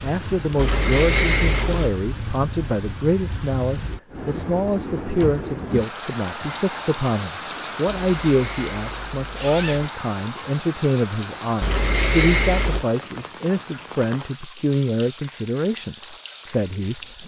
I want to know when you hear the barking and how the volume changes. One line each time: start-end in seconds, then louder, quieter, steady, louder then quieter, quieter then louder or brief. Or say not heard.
not heard.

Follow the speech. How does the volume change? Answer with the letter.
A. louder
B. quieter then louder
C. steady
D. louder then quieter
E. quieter
C.